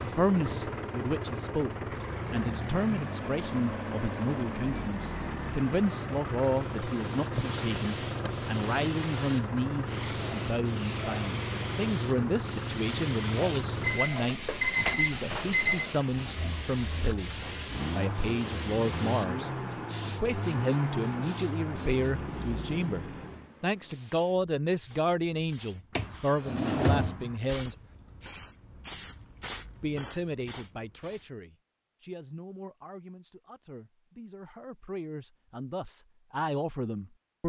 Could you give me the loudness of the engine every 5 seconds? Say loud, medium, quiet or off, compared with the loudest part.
loud, loud, loud, loud, loud, off, off, off.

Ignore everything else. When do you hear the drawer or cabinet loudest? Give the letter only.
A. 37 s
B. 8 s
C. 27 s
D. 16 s
C.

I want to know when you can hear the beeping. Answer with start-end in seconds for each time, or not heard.
13.8-15.9.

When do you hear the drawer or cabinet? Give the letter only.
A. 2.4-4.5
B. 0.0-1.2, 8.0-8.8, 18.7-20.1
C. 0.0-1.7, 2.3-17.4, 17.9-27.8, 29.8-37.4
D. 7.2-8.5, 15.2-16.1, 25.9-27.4
D.